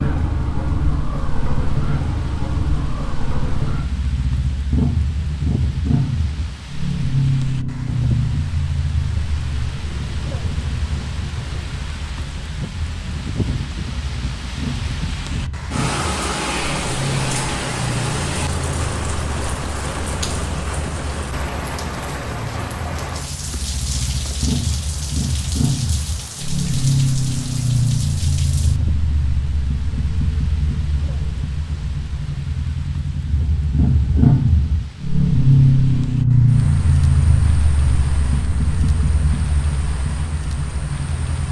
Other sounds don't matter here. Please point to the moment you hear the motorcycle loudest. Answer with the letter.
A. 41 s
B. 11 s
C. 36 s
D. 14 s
C.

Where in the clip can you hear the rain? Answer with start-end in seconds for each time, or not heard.
0.0-41.4.